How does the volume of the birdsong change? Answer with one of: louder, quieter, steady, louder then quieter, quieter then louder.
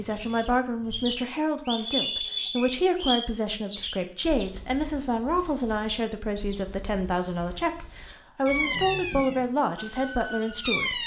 steady.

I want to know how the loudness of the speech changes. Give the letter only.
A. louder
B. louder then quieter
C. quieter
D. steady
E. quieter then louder
D.